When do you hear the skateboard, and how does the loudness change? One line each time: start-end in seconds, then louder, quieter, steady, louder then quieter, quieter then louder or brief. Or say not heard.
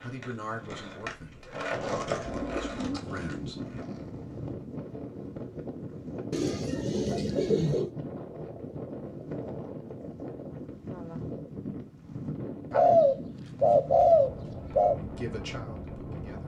0.0-4.3 louder then quieter.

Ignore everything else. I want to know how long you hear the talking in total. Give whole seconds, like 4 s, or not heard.
5 s.